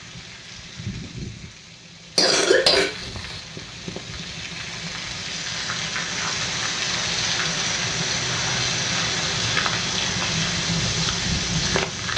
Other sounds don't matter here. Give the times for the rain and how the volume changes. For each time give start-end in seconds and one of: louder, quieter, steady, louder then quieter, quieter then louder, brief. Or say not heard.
0.0-12.1 louder.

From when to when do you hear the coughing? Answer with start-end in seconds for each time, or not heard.
2.1-3.4.